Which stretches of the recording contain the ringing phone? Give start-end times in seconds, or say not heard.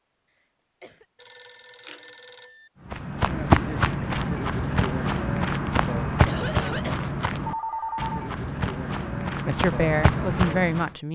1.1-2.7, 7.5-8.3.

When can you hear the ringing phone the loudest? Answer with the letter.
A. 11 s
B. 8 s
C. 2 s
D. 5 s
B.